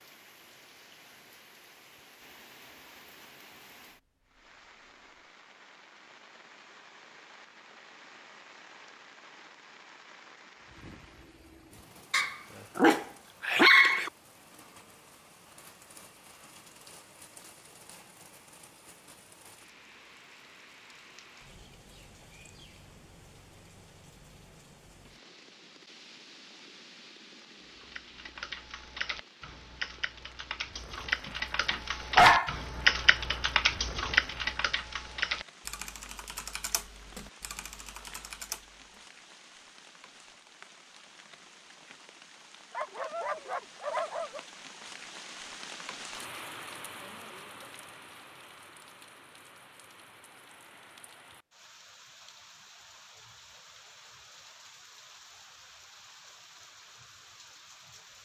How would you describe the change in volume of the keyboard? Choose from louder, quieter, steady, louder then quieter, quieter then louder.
louder then quieter.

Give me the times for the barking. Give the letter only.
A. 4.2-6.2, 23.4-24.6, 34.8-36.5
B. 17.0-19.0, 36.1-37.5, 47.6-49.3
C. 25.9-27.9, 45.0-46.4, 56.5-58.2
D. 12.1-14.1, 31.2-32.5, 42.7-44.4
D.